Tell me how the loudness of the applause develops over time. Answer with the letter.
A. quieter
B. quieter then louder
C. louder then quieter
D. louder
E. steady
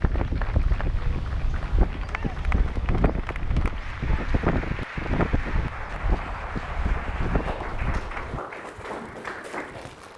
D.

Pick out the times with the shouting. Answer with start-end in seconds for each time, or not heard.
2.0-2.5.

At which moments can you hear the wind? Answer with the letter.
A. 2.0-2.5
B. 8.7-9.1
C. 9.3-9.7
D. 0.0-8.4
D.